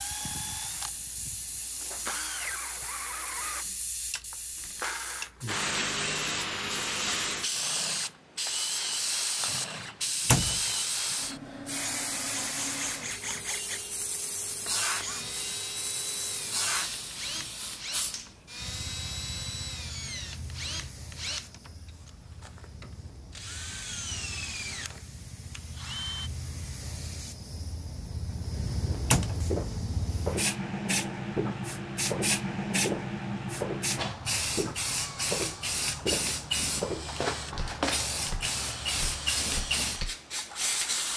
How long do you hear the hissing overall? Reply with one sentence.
The hissing can be heard for 41 seconds in total.